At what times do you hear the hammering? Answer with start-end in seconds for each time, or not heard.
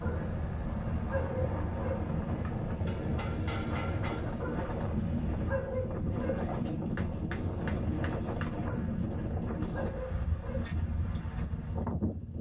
2.5-4.2, 6.7-8.5.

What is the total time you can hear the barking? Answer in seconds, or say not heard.
6 s.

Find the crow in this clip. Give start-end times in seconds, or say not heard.
not heard.